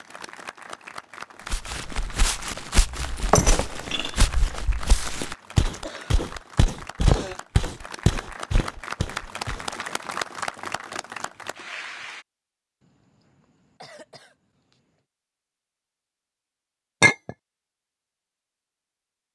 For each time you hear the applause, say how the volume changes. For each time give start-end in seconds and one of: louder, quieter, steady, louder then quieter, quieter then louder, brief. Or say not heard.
0.0-12.2 louder.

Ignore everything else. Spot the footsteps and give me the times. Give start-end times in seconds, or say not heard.
1.5-9.7.